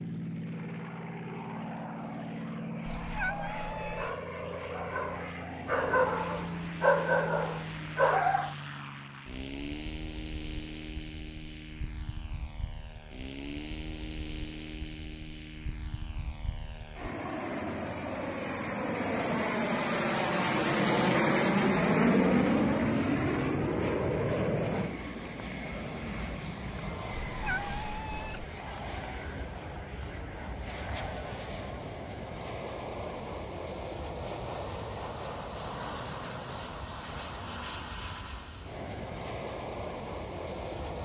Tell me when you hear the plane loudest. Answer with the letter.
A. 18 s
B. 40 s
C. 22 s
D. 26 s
C.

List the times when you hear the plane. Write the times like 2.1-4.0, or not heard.
0.0-41.0.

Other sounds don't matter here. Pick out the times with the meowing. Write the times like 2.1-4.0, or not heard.
2.9-4.2, 27.1-28.4.